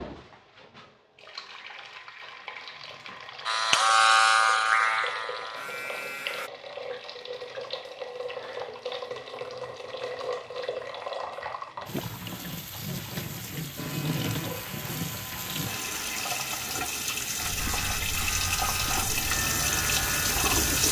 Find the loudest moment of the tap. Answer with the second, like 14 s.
20 s.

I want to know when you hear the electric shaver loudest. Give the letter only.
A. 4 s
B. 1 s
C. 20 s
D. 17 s
A.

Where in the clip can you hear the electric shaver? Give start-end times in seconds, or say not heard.
3.5-6.5, 13.8-20.8.